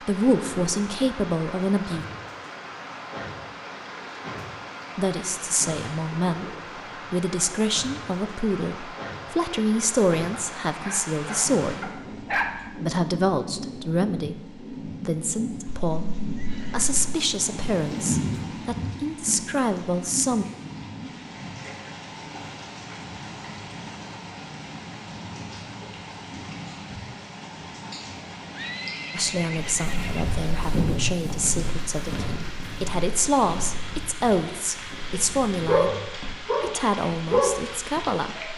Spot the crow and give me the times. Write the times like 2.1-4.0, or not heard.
not heard.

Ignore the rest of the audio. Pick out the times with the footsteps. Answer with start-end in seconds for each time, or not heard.
29.8-35.6.